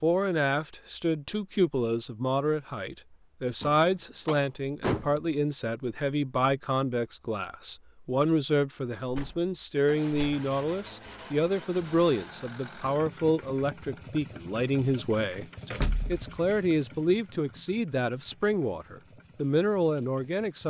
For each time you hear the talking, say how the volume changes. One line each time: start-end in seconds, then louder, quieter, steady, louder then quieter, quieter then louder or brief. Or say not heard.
0.0-20.6 steady.